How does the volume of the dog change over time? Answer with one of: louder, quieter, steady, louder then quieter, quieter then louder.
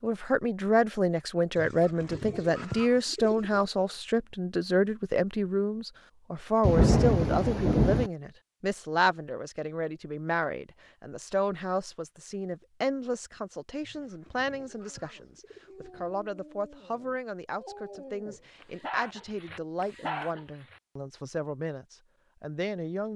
louder.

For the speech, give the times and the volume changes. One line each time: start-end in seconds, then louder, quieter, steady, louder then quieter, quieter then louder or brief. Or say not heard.
0.0-23.1 quieter.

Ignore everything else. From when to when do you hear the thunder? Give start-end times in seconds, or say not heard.
6.6-8.1.